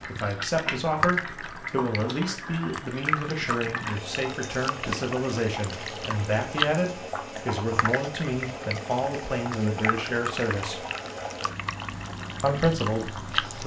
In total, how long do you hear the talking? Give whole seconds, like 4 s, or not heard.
12 s.